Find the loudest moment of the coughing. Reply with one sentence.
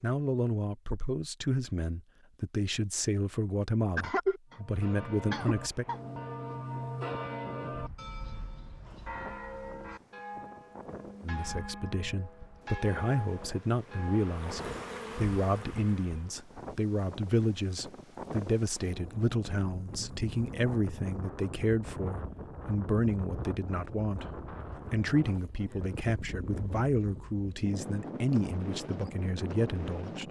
The volume of the coughing peaks at 4 seconds.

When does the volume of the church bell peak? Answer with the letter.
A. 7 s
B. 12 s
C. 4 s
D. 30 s
A.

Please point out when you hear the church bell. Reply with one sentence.
You can hear the church bell from 4.5 to 14.3 s.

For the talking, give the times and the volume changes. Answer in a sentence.
The talking can be heard from 0.0 to 5.8 s, at a steady volume; and from 11.2 to 30.2 s, at a steady volume.